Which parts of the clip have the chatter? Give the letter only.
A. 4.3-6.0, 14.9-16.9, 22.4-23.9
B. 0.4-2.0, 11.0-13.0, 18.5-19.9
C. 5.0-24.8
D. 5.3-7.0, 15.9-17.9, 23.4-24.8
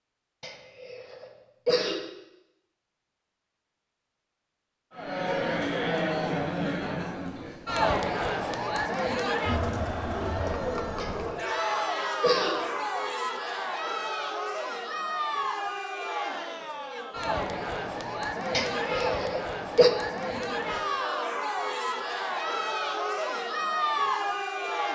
C.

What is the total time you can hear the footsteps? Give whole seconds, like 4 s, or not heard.
not heard.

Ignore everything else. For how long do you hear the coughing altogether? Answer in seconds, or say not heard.
5 s.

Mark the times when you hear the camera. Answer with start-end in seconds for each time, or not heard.
not heard.